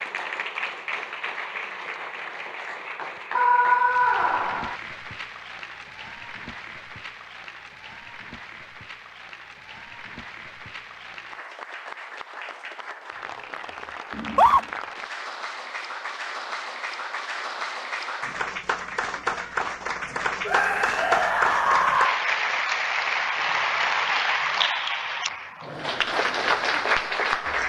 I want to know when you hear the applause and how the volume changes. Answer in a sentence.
The applause can be heard from 0.0 to 27.6 s, getting quieter then louder.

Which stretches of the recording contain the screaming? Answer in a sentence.
You can hear the screaming from 3.4 to 4.8 s, from 14.1 to 14.7 s and from 20.4 to 22.2 s.